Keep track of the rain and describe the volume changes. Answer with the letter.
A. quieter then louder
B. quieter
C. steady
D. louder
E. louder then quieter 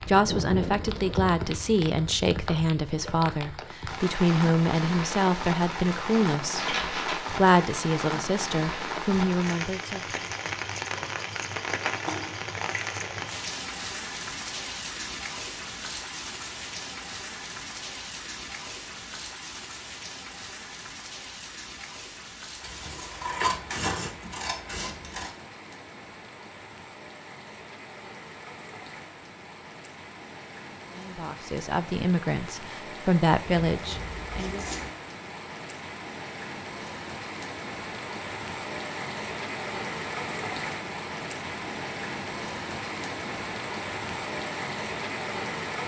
A.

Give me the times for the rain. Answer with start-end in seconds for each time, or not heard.
0.0-45.8.